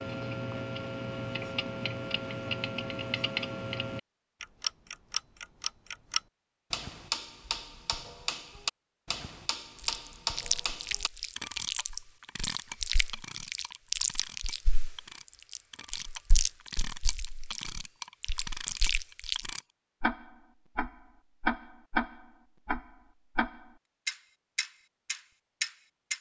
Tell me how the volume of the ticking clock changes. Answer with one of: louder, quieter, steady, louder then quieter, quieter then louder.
quieter then louder.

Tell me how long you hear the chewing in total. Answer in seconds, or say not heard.
10 s.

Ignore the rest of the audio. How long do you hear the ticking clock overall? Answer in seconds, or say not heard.
26 s.